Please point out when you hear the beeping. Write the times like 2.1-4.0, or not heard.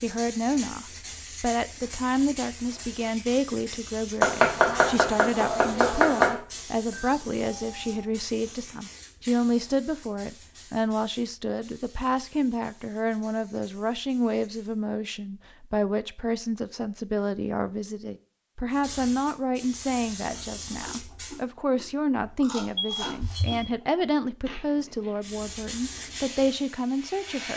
6.9-8.1, 22.8-23.7.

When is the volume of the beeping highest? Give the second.
23 s.